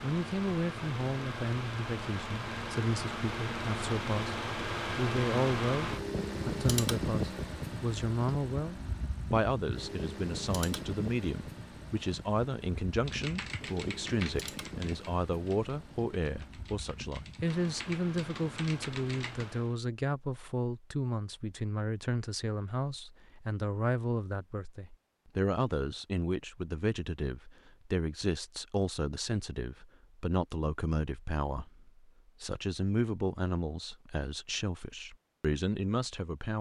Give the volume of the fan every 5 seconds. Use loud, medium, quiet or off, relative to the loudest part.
loud, loud, medium, quiet, off, off, off, off.